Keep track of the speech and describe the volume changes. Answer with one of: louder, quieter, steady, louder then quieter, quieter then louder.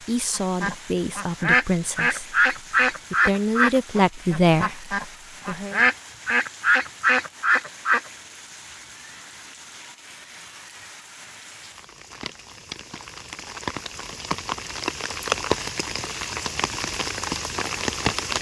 louder.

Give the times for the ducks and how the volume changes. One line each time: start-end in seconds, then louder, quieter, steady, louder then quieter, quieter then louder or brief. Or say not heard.
0.3-8.0 steady.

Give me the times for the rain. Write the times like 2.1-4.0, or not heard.
0.0-18.3.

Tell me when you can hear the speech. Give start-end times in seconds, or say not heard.
0.0-5.8.